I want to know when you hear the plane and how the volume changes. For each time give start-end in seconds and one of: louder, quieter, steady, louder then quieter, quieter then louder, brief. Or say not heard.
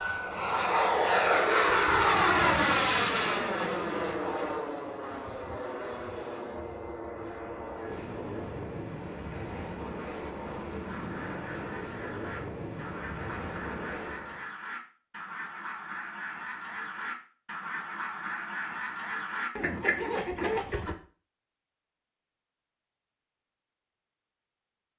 0.0-14.5 quieter.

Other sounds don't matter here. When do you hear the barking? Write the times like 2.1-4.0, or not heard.
not heard.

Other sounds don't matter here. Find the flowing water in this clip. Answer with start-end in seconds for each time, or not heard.
not heard.